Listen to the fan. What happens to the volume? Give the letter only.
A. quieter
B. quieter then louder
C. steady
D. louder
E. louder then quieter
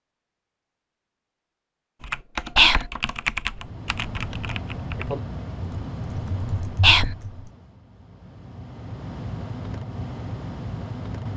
B.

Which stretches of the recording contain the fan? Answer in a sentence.
The fan can be heard from 3.5 to 11.3 s.